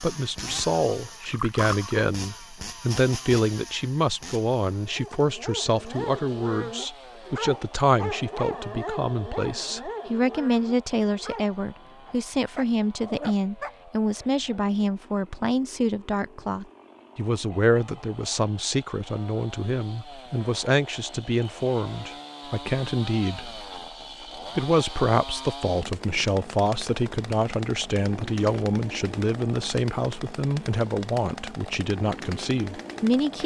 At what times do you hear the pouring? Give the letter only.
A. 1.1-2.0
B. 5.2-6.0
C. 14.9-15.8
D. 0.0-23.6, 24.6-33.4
A.